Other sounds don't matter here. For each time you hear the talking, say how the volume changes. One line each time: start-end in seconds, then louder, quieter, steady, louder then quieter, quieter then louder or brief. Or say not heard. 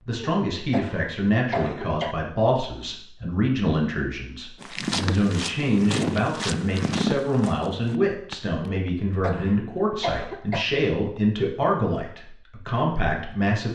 0.1-13.6 steady.